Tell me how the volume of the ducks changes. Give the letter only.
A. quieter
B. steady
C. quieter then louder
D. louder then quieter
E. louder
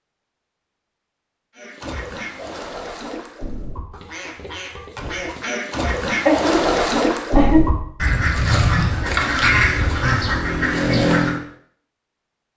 E.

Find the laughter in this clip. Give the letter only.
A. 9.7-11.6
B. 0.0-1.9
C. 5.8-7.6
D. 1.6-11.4
C.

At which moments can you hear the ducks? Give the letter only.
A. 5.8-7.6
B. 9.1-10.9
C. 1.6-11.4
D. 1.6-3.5
C.